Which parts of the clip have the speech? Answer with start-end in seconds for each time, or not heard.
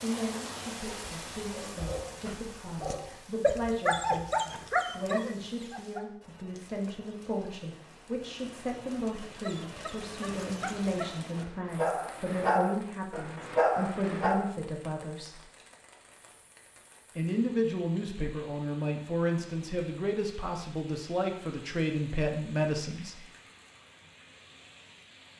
0.0-15.4, 17.1-23.2.